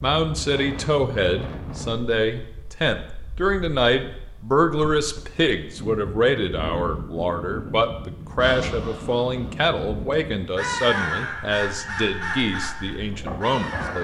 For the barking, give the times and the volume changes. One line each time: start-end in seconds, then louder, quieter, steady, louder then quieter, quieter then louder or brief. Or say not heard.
not heard.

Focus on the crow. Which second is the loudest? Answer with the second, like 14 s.
11 s.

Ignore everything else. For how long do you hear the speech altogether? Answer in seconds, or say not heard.
14 s.